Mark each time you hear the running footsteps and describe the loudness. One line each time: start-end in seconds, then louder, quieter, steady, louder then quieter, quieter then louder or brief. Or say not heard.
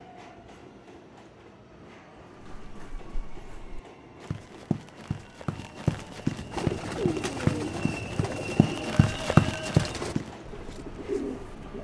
2.4-10.3 louder.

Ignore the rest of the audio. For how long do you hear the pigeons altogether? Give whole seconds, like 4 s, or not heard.
5 s.